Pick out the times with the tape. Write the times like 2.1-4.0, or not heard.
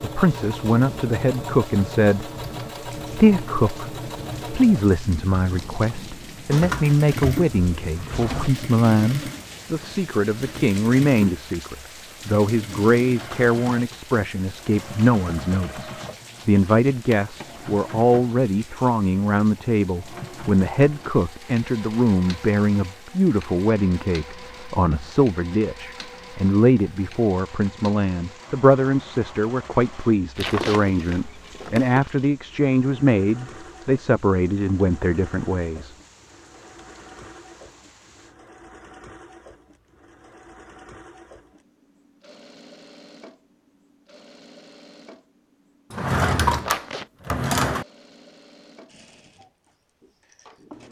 5.5-6.0, 30.4-30.8, 46.6-47.1.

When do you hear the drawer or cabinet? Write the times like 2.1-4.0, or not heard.
6.5-8.5, 30.4-32.0, 45.9-47.9.